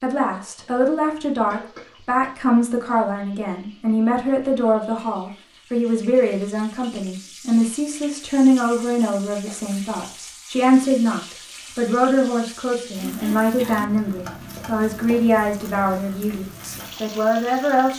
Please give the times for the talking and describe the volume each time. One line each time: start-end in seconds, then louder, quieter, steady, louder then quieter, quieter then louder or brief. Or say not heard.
0.0-17.9 steady.